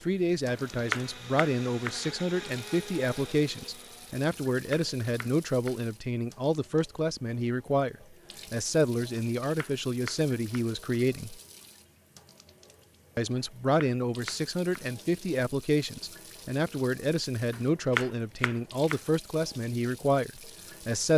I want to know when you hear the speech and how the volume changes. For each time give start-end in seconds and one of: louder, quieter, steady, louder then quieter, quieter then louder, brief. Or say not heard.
0.0-11.4 steady
13.2-21.1 steady.